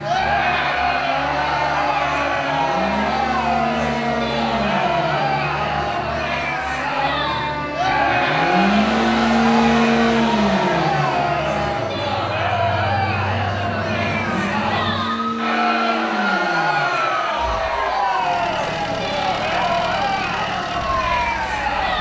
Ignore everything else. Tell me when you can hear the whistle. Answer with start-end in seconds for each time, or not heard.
not heard.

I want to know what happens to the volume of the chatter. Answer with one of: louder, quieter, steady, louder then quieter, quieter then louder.
steady.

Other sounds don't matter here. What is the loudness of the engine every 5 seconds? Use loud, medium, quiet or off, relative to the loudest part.
medium, loud, loud, medium, medium.